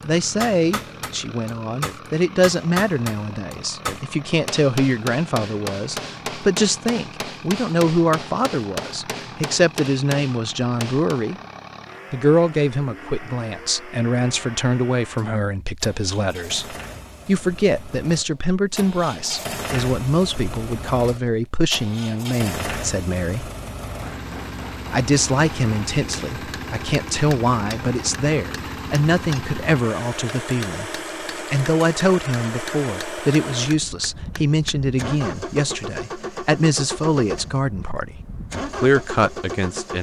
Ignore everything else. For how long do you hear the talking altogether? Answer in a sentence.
The talking can be heard for 38 seconds in total.